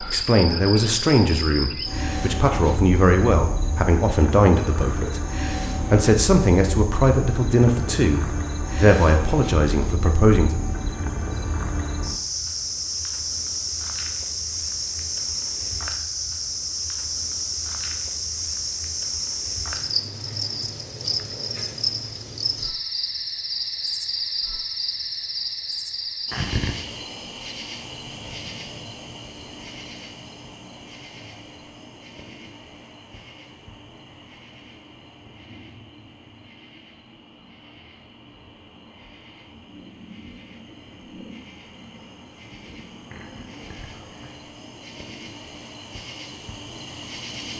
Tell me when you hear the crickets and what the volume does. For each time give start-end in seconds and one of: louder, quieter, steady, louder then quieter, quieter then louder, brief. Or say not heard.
0.0-47.5 quieter.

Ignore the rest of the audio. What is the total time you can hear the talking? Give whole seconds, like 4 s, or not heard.
10 s.